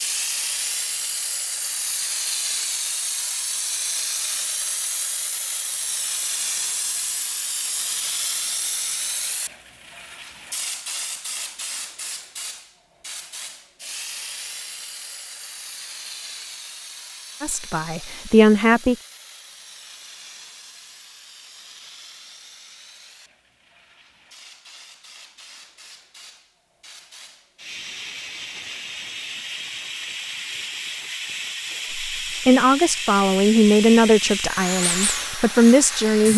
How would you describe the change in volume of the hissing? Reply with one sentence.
The loudness of the hissing goes down, then up.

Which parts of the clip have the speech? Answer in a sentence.
The speech can be heard from 17.4 to 18.9 s and from 32.1 to 36.3 s.